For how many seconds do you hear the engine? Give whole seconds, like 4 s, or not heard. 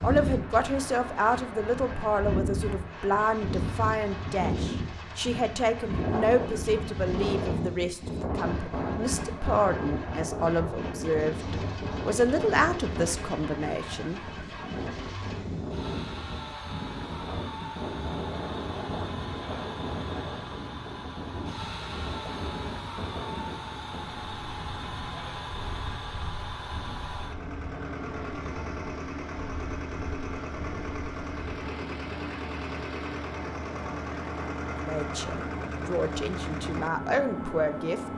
38 s.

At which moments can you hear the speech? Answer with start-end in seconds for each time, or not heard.
0.0-14.2, 34.8-38.0.